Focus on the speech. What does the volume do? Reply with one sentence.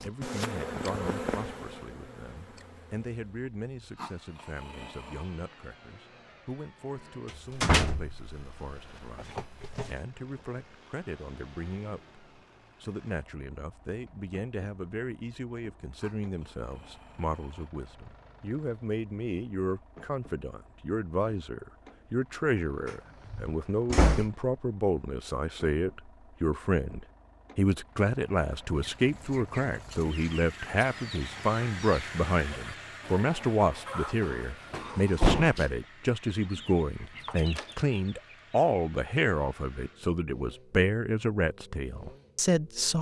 The loudness of the speech goes up.